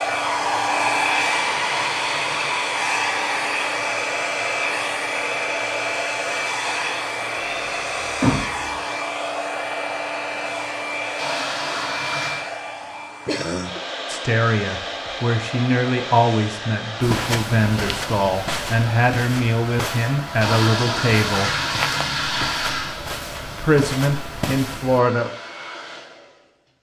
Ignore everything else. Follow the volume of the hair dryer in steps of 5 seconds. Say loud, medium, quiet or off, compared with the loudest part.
loud, loud, medium, medium, quiet, quiet.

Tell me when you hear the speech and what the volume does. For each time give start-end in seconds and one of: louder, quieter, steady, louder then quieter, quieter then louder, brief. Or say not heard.
14.1-21.6 steady
23.6-25.3 brief.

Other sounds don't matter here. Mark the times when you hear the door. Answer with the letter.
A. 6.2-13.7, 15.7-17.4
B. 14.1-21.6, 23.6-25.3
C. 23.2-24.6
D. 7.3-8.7
D.